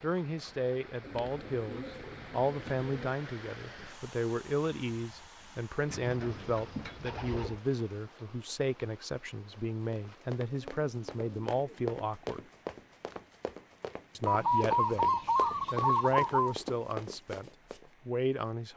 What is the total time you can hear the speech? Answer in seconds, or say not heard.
17 s.